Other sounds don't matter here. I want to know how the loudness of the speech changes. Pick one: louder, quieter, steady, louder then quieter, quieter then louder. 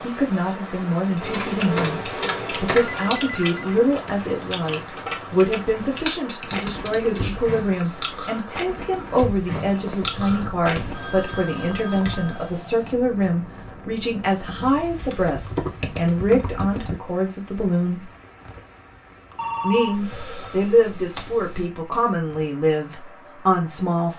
steady.